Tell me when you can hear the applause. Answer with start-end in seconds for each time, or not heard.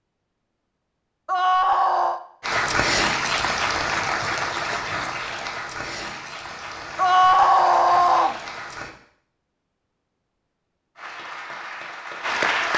2.4-8.9, 10.9-12.7.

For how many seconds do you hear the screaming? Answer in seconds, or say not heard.
2 s.